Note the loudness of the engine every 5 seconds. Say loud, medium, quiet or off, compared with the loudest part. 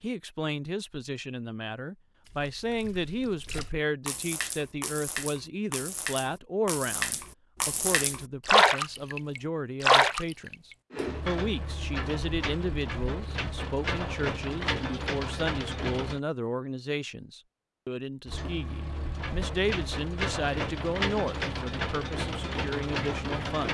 off, off, loud, loud, loud.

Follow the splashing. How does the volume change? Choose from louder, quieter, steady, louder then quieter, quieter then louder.
louder.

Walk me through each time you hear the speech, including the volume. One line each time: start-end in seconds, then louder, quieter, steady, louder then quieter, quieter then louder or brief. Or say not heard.
0.0-23.7 steady.